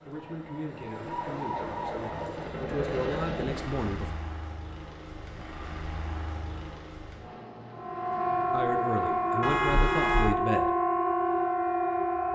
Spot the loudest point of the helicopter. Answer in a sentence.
The loudest moment of the helicopter is at 3 seconds.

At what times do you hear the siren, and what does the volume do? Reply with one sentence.
The siren can be heard briefly from 0.0 to 2.5 s; and from 7.7 to 12.2 s, at a steady volume.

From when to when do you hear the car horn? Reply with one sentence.
You can hear the car horn from 9.4 to 10.3 s.